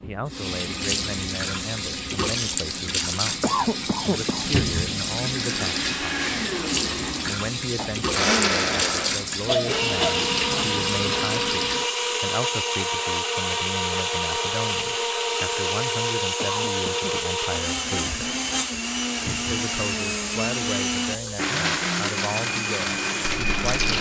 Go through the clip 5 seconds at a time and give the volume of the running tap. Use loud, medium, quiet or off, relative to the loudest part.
loud, loud, loud, medium, medium.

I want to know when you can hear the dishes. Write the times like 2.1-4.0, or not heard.
not heard.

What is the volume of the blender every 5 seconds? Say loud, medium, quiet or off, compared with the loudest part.
off, loud, loud, loud, loud.